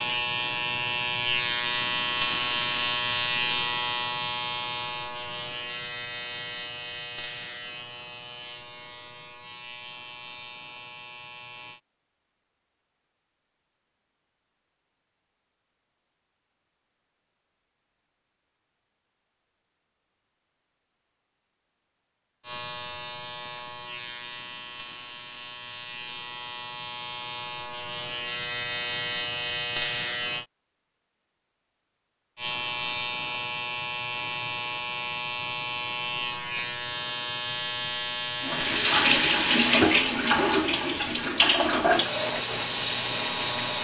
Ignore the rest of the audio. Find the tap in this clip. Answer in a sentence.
The tap can be heard from 38.4 to 43.7 s.